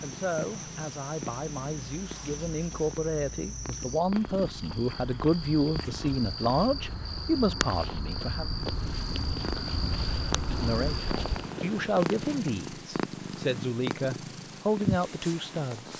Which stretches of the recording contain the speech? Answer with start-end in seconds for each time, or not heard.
0.0-8.5, 10.5-15.9.